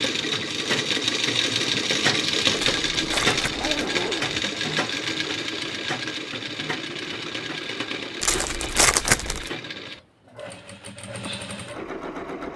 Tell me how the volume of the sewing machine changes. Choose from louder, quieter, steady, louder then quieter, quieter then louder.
quieter.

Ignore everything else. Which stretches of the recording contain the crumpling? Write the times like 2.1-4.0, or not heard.
2.5-3.7, 8.2-9.5.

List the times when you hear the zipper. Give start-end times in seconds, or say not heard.
3.5-4.5.